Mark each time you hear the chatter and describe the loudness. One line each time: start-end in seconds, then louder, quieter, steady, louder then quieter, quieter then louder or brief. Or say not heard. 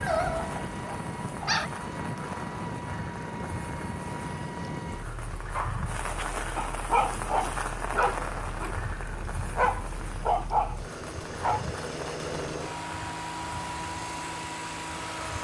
not heard.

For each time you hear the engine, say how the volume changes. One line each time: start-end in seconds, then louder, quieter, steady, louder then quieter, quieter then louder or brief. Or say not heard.
0.0-15.4 quieter then louder.